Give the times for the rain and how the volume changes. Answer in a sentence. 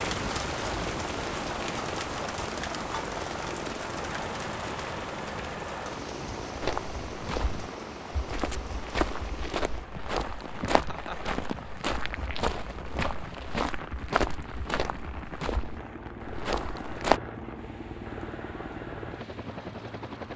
The rain can be heard from 0.0 to 20.3 s, getting quieter.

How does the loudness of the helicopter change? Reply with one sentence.
The volume of the helicopter goes down, then up.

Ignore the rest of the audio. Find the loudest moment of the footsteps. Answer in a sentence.
The volume of the footsteps peaks at 17 seconds.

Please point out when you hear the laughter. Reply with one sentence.
You can hear the laughter from 10.4 to 11.3 s.